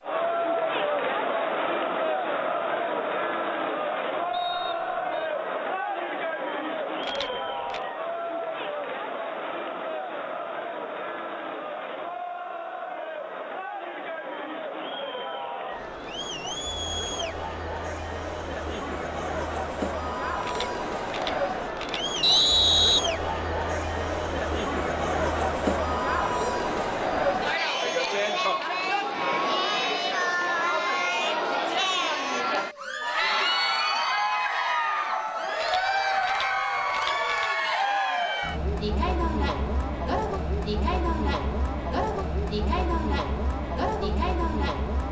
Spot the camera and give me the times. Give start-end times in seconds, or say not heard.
7.0-7.8, 20.4-22.1, 35.5-37.5.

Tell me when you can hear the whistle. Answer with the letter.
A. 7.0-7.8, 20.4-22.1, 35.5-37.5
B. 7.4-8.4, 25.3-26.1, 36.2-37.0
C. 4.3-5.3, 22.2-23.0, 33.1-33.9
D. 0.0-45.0
C.